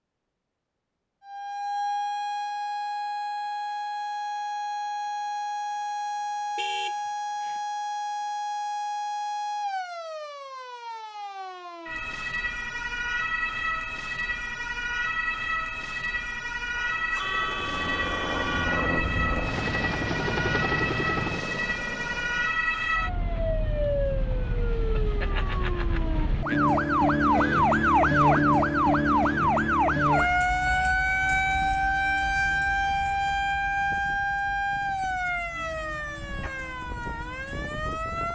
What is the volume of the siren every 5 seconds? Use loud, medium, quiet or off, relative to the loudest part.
medium, medium, medium, medium, medium, loud, loud, medium.